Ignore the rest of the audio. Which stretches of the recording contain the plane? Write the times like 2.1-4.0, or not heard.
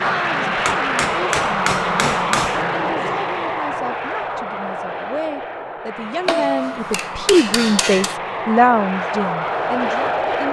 0.0-10.4.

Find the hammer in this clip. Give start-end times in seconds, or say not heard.
0.7-2.6, 6.2-8.2.